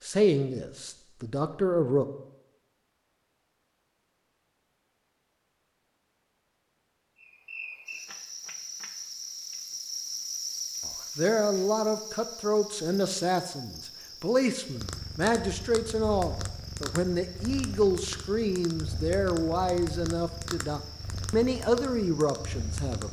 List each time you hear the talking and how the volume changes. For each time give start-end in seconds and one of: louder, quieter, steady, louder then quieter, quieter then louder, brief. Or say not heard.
0.0-2.0 brief
10.8-23.0 steady.